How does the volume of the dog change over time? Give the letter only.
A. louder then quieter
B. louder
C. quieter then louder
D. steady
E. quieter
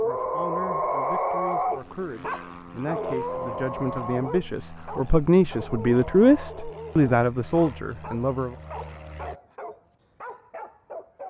E.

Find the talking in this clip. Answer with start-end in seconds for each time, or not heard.
0.0-8.6.